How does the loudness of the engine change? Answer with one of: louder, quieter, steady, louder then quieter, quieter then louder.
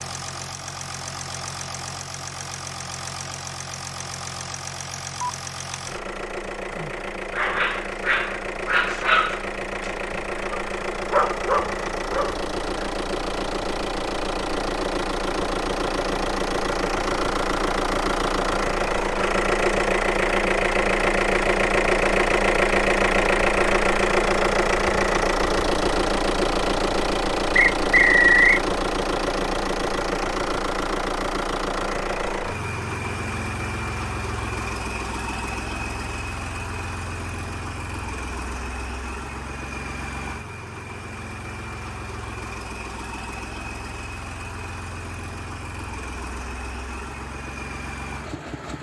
louder then quieter.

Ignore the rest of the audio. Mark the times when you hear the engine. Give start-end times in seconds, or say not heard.
0.0-48.7.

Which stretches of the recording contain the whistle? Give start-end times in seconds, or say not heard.
27.6-28.6.